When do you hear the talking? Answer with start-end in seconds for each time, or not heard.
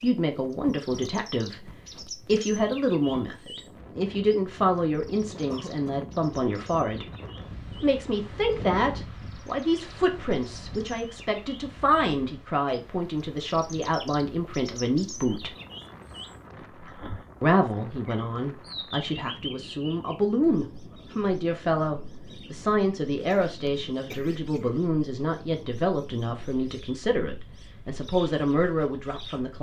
0.0-7.0, 7.8-15.6, 17.4-29.5.